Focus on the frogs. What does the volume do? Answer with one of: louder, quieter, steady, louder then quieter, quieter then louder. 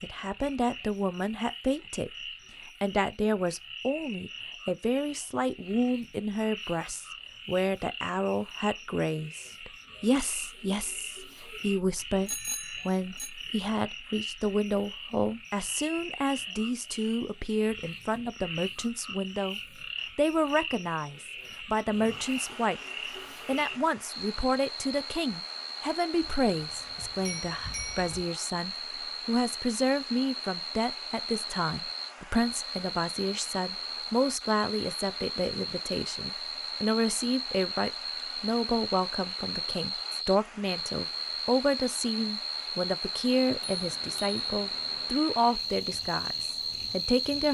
louder.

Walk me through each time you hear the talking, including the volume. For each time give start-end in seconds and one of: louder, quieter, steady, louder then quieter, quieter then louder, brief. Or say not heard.
0.0-2.1 brief
2.8-22.8 steady
23.4-47.5 steady.